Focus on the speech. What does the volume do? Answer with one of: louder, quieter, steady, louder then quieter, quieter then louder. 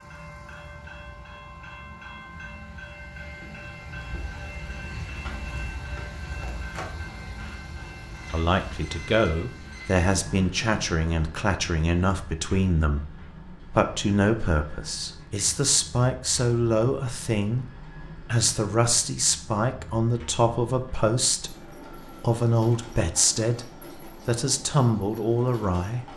steady.